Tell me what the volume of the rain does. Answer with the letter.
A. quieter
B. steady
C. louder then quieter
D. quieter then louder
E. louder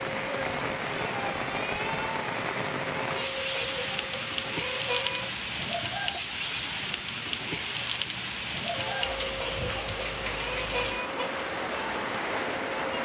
B.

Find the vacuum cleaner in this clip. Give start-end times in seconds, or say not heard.
0.0-5.3, 8.7-12.9.